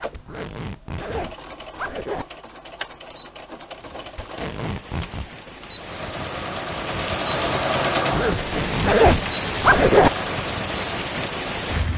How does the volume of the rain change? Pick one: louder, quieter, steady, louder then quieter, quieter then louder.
louder.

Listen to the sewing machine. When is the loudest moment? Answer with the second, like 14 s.
8 s.